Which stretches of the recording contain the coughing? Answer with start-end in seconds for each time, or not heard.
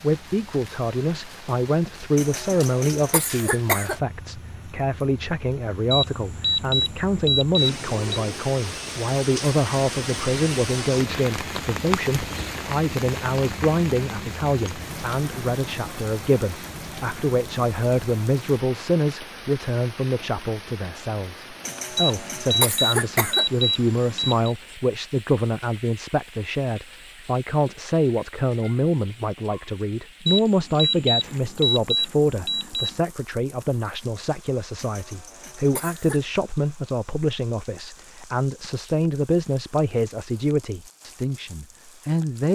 2.1-4.0, 21.6-23.4, 34.8-36.2.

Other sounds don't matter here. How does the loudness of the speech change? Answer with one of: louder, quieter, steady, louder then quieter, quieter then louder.
steady.